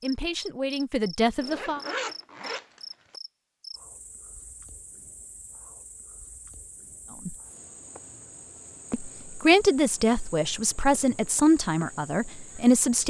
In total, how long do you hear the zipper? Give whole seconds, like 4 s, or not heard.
2 s.